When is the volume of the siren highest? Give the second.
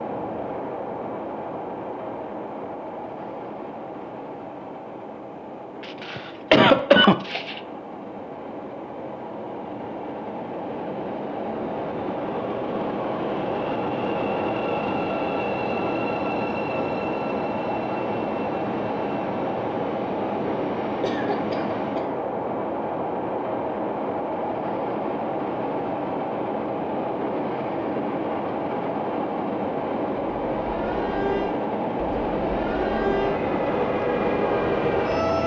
35 s.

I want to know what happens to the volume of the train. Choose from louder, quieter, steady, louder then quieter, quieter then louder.
louder.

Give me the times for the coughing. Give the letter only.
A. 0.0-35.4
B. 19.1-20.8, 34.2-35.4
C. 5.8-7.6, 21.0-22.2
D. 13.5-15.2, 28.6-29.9
C.